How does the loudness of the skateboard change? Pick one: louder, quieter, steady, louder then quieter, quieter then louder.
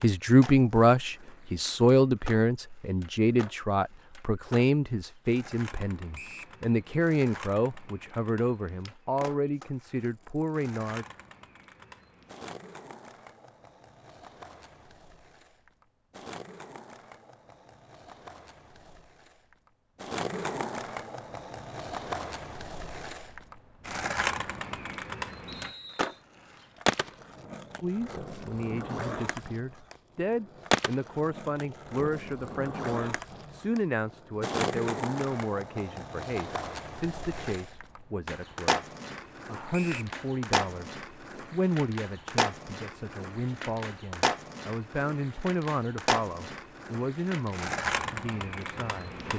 louder.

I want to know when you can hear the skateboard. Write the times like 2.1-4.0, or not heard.
0.0-49.3.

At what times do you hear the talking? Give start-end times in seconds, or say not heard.
0.0-11.1, 27.8-38.8, 39.5-49.3.